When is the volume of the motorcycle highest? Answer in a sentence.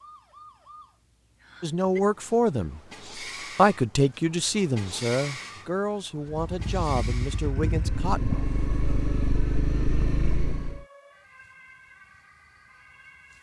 The loudest moment of the motorcycle is at 10 seconds.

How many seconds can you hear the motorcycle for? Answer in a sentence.
The motorcycle can be heard for 5 seconds in total.